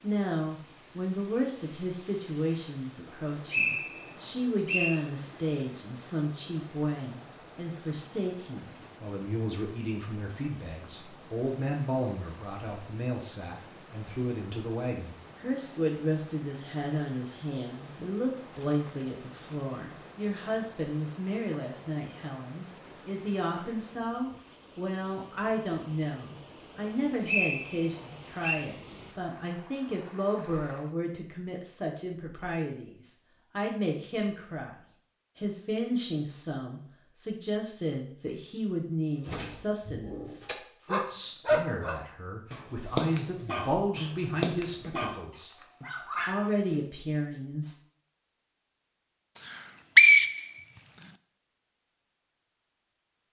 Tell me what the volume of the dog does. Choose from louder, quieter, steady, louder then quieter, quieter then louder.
louder then quieter.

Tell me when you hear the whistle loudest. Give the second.
50 s.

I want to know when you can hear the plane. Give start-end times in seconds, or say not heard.
not heard.